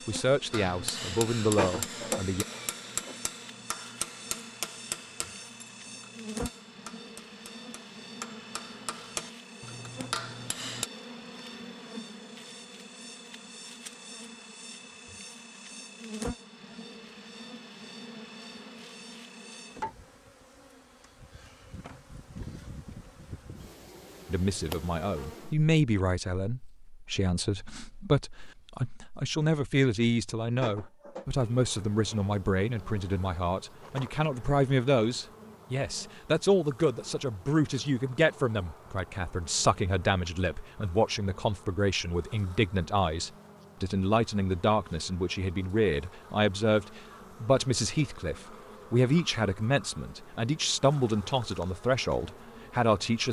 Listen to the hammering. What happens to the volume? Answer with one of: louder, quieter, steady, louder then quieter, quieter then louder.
quieter then louder.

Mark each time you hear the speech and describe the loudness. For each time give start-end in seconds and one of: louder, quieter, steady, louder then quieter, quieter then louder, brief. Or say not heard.
0.1-2.5 brief
24.2-53.2 steady.